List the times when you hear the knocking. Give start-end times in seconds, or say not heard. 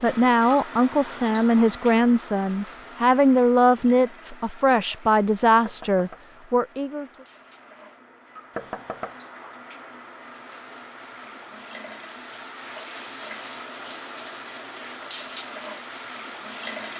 5.7-6.2, 8.6-9.2.